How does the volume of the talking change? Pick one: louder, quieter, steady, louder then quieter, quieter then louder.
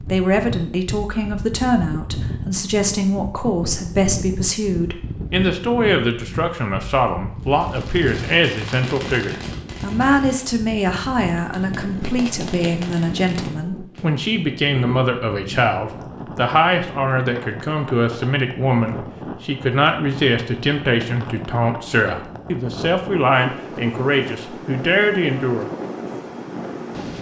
steady.